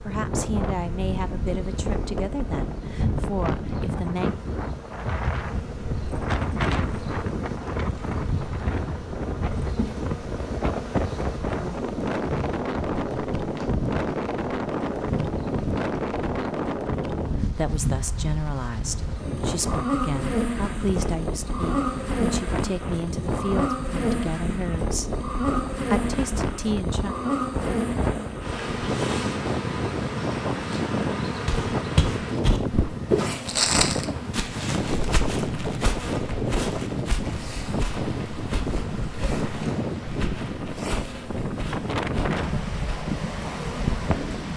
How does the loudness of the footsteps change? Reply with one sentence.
The volume of the footsteps goes down.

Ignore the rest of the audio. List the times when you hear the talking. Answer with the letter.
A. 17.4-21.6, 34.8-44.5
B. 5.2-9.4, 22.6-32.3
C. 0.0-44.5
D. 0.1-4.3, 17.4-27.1
D.